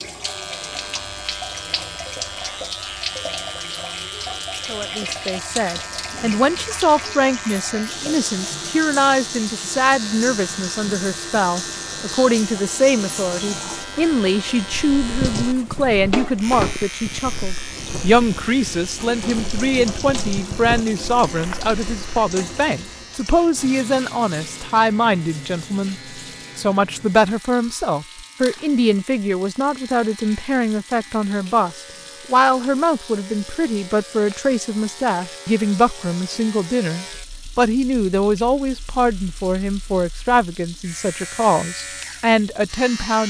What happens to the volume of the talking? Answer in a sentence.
The volume of the talking stays about the same.